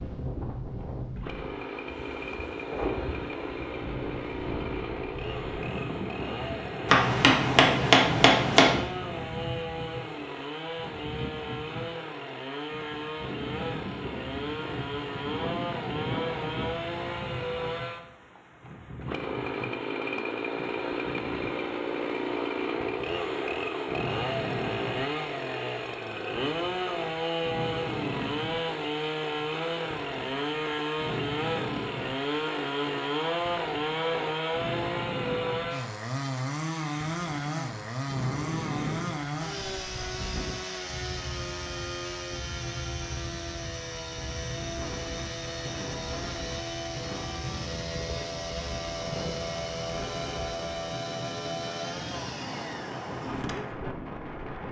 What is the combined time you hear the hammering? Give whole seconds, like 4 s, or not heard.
2 s.